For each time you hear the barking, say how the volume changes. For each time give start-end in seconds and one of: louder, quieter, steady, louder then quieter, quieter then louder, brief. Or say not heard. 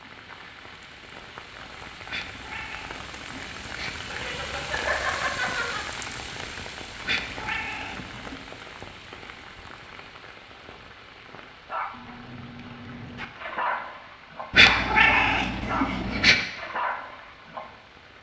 11.7-17.7 louder.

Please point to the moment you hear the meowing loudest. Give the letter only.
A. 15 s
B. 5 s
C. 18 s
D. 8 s
A.